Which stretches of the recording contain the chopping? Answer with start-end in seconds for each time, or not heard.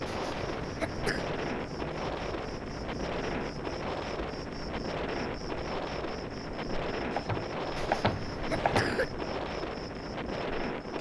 7.1-9.0.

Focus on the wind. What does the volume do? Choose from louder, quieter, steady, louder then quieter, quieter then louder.
steady.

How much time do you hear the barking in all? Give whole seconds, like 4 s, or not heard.
not heard.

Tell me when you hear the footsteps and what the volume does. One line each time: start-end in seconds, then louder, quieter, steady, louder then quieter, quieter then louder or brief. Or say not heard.
not heard.